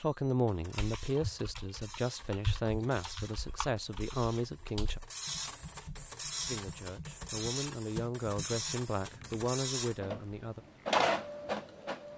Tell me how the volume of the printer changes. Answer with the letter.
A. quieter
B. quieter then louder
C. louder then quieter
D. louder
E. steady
D.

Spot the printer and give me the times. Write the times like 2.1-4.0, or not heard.
0.0-12.1.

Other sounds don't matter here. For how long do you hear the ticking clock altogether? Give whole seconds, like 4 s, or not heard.
not heard.